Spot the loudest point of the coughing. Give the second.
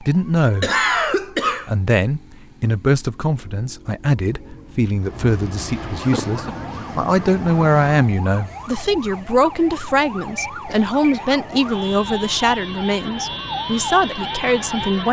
1 s.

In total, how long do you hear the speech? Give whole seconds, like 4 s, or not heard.
14 s.